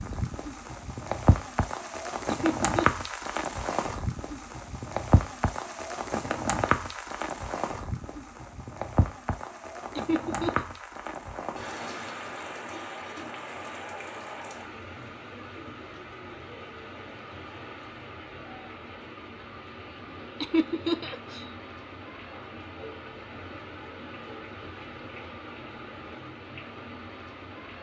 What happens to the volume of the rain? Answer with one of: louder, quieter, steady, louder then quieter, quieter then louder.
quieter.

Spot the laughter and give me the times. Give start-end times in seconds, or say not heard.
2.3-3.0, 9.9-10.7, 20.4-21.4.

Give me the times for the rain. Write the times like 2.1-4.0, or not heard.
0.0-27.7.